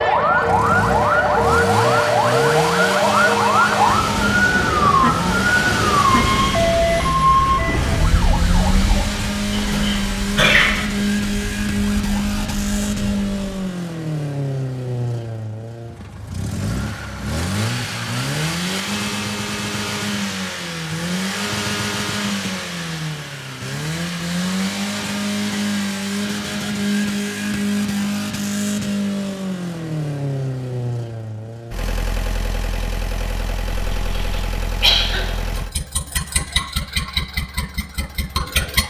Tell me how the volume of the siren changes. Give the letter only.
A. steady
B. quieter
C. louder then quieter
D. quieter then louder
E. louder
B.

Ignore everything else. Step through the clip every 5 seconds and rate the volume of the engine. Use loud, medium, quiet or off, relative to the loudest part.
loud, loud, loud, loud, loud, loud, medium, loud.